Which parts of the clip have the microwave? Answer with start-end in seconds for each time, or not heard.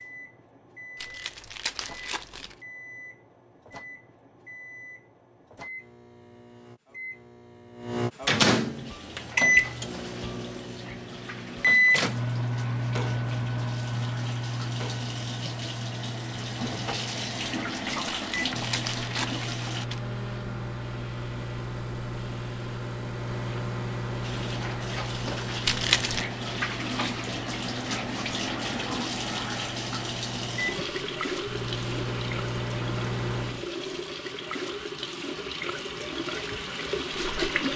0.0-33.6.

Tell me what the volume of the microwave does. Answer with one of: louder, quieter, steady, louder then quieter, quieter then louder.
louder then quieter.